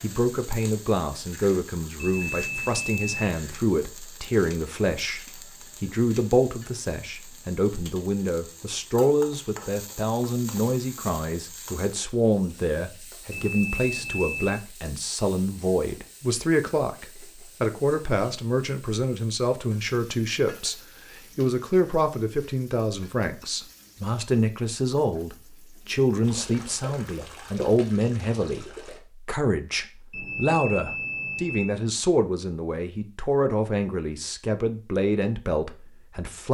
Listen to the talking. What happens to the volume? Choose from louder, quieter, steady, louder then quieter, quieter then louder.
steady.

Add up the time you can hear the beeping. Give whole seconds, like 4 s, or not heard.
4 s.